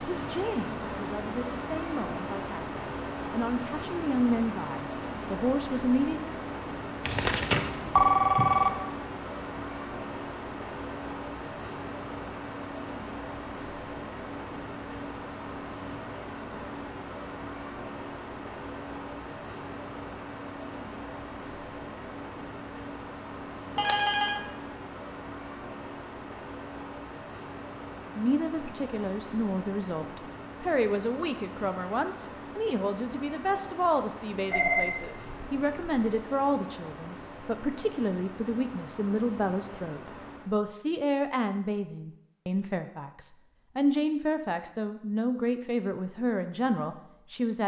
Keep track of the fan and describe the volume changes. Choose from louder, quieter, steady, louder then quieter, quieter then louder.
quieter.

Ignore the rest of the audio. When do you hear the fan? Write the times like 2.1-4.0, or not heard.
0.0-40.5.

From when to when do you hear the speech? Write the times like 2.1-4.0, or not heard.
0.0-6.3, 28.1-47.6.